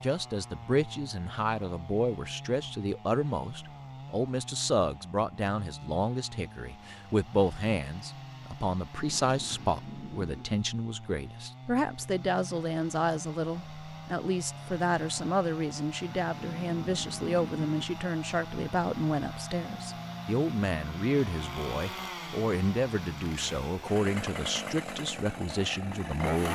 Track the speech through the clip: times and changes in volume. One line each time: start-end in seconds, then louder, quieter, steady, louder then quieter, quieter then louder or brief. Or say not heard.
0.0-26.5 steady.